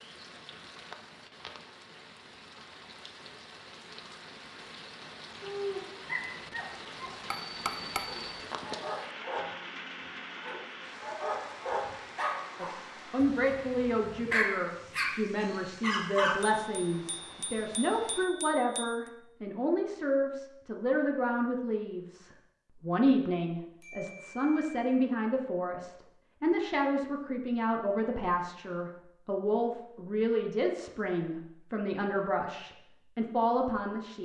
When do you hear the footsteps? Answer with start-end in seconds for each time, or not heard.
not heard.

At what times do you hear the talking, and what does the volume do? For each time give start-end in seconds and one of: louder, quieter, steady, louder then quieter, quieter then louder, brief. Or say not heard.
12.6-34.1 steady.